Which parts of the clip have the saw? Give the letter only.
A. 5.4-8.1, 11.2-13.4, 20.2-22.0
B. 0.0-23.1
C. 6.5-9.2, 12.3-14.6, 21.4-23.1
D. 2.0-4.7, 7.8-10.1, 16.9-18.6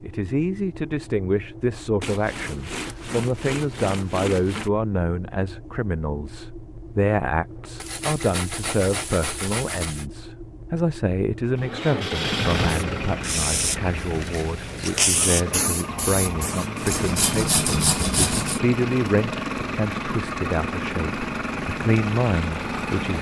D.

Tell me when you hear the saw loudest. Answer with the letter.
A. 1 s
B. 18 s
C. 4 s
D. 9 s
B.